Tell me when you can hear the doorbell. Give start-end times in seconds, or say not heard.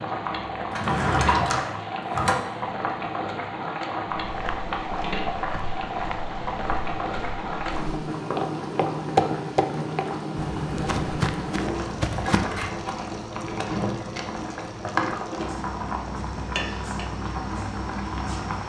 not heard.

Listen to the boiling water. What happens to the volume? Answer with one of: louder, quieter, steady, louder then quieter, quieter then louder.
steady.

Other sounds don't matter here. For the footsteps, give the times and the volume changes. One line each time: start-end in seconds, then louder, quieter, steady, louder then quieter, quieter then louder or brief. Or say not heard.
4.2-12.7 louder then quieter.